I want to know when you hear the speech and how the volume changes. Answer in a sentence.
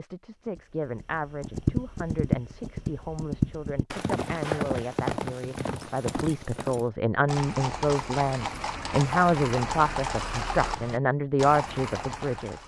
You can hear the speech from 0.0 to 12.6 s, getting louder.